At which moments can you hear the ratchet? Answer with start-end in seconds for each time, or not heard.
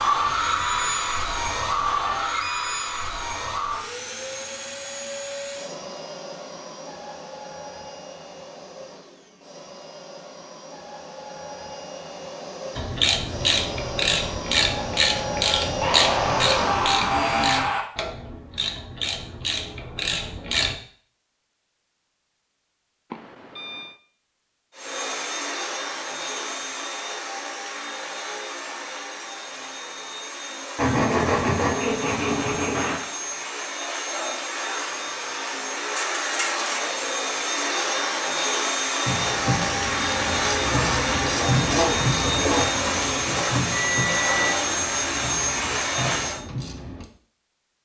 12.8-20.8, 39.0-47.0.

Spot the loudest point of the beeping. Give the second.
44 s.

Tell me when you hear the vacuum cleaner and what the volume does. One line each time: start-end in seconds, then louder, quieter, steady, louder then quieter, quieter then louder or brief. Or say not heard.
0.0-17.6 quieter then louder
24.7-46.4 louder.